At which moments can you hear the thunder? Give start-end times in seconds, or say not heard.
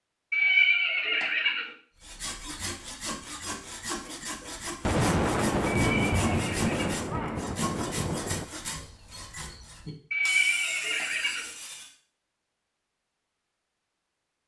4.8-8.4.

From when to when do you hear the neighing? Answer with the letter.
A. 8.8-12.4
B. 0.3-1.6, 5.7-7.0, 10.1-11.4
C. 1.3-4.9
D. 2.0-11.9
B.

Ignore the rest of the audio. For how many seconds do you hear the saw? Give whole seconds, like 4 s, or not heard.
10 s.